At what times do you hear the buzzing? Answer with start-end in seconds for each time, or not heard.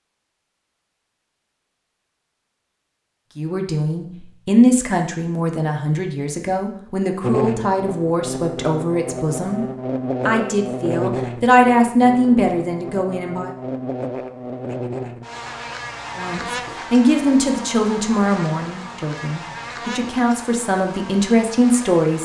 7.2-22.2.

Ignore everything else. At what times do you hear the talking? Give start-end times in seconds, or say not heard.
3.4-9.7, 10.2-13.5, 16.1-22.2.